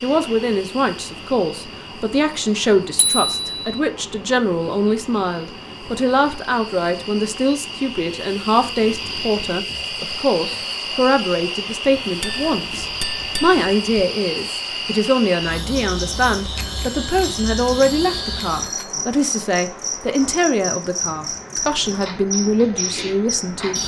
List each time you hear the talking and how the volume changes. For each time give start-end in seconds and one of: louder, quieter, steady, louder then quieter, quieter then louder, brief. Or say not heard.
0.0-23.8 steady.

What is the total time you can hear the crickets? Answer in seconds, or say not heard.
24 s.